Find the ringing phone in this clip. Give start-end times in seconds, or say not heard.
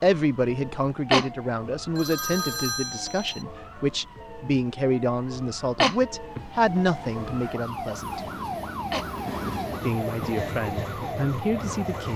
1.9-3.5.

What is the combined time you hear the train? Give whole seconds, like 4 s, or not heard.
6 s.